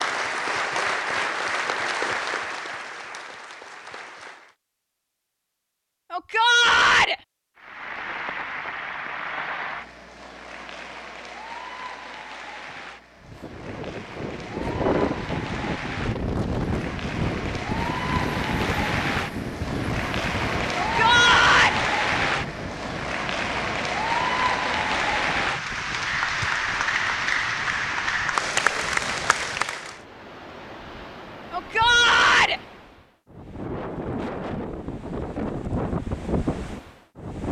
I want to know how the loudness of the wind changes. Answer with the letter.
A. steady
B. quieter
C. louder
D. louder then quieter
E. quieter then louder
E.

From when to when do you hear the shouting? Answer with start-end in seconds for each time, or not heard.
6.1-7.2, 20.8-21.8, 31.5-32.6.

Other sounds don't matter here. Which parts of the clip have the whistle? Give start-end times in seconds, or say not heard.
not heard.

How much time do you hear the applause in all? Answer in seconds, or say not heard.
27 s.